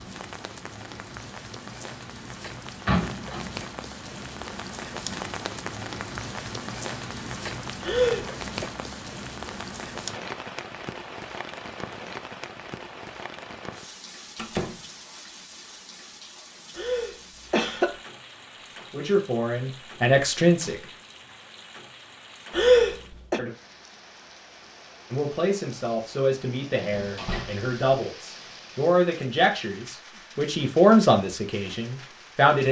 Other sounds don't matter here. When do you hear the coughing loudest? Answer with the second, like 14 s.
23 s.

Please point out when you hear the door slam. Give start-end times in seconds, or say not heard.
2.9-3.5, 14.3-14.8, 26.9-27.7.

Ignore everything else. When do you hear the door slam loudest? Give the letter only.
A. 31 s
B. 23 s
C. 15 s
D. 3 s
D.